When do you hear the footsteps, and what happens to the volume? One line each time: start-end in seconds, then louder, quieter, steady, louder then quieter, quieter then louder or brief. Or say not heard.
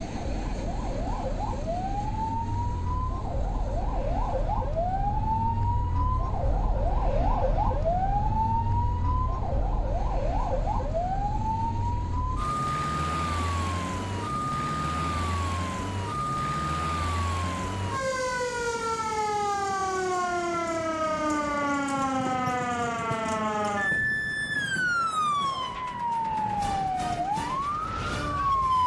not heard.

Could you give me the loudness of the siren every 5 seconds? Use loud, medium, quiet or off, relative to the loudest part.
medium, loud, loud, loud, loud, loud.